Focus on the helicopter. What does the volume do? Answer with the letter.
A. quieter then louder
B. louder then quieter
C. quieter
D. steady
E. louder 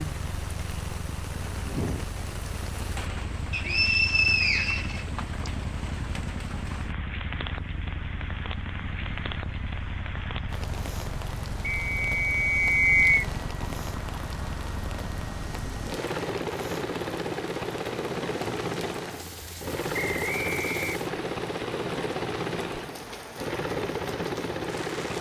E.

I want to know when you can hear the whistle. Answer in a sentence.
The whistle can be heard from 3.5 to 5.5 s, from 11.8 to 13.2 s and from 19.9 to 20.9 s.